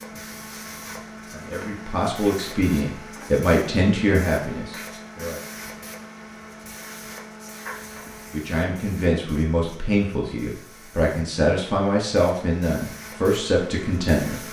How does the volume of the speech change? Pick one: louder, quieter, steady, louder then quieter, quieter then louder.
steady.